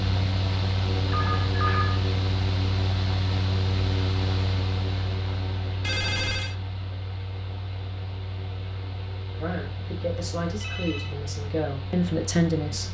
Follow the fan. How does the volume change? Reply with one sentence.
The volume of the fan goes down.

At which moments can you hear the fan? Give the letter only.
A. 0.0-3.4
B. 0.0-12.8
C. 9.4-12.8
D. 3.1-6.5
B.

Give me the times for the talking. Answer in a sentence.
You can hear the talking from 9.4 to 12.8 s.